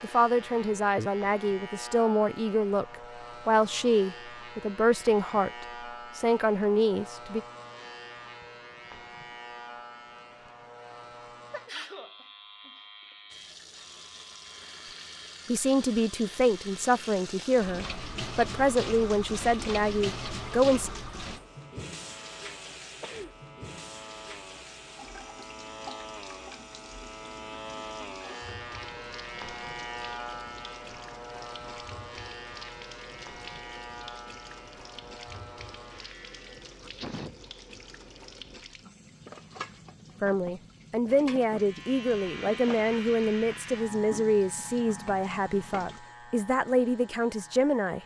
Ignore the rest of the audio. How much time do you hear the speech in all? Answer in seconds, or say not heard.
21 s.